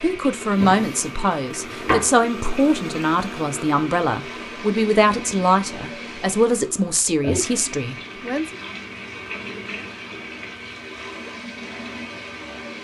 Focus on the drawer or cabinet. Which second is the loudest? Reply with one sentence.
The loudest moment of the drawer or cabinet is at 2 seconds.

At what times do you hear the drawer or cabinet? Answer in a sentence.
You can hear the drawer or cabinet from 0.5 to 2.1 s.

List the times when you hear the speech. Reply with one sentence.
The speech can be heard from 0.0 to 8.6 s.